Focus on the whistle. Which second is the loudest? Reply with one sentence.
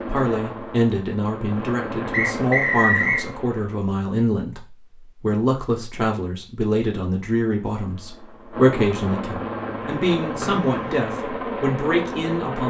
The volume of the whistle peaks at 3 seconds.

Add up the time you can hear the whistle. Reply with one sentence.
You can hear the whistle for 2 seconds altogether.